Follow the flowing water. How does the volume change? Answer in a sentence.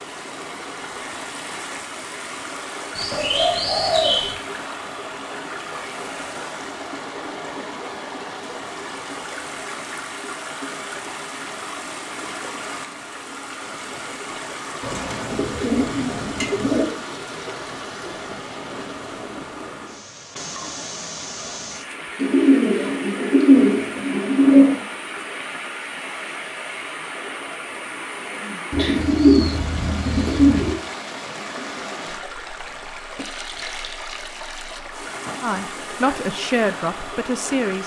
The volume of the flowing water stays about the same.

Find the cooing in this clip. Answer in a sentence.
The cooing can be heard from 3.0 to 4.3 s, from 14.8 to 16.9 s, from 22.1 to 24.8 s and from 28.7 to 30.8 s.